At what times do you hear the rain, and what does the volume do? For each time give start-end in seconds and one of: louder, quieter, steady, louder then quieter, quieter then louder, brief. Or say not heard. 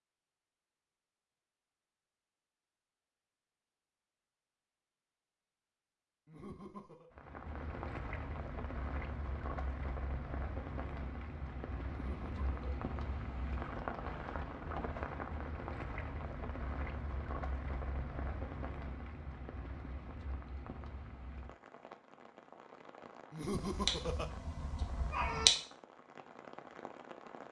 7.1-27.4 quieter.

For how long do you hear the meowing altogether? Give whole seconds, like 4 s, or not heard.
2 s.